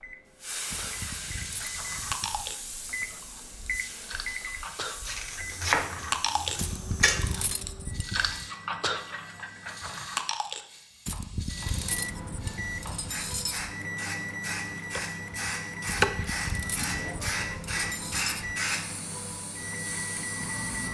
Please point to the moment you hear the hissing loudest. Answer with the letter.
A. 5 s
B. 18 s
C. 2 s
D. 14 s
B.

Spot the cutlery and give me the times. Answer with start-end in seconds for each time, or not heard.
0.7-2.5, 6.5-8.5, 11.1-13.7, 15.8-18.4.